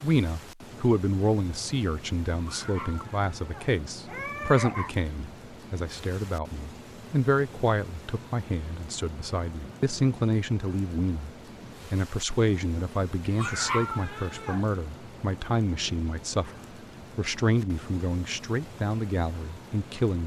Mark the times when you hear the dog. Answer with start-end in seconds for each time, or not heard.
2.3-5.0, 13.2-14.7.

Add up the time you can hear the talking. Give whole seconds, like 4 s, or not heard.
19 s.